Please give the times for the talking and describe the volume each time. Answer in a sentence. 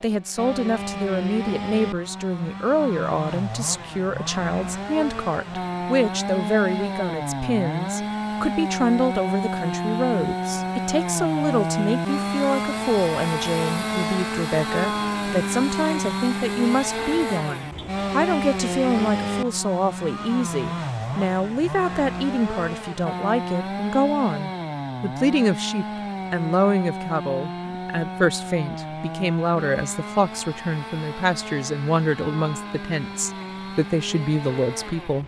The talking can be heard from 0.0 to 35.2 s, at a steady volume.